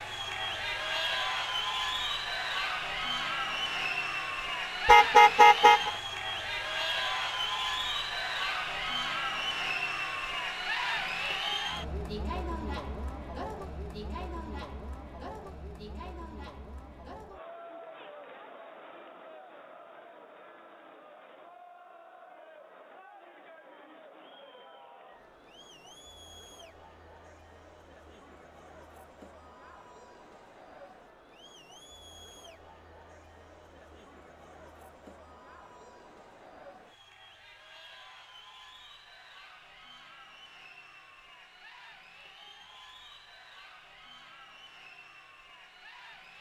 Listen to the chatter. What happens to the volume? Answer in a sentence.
The volume of the chatter goes down.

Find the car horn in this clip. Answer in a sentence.
The car horn can be heard from 4.8 to 5.9 s.